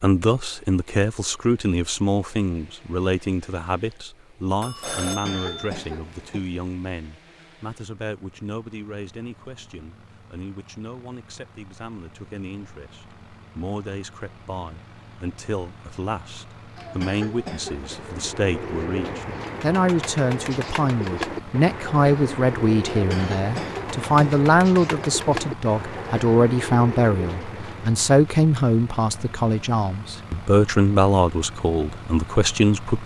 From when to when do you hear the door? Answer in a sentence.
The door can't be heard in this clip.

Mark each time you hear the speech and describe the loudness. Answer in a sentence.
You can hear the speech from 0.0 to 33.0 s, getting quieter then louder.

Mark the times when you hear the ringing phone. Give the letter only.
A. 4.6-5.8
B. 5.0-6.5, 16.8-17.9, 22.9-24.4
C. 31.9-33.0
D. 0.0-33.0
A.